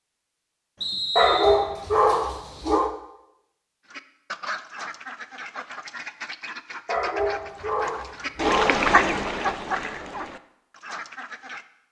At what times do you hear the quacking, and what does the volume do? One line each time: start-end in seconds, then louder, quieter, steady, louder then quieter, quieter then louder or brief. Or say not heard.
3.9-11.7 louder then quieter.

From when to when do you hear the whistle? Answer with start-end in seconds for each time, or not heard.
0.8-1.6.